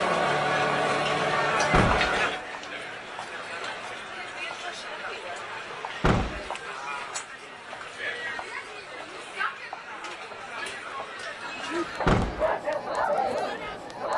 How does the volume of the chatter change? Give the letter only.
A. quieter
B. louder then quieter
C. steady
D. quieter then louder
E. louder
A.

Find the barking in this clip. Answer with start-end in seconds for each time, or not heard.
11.4-14.1.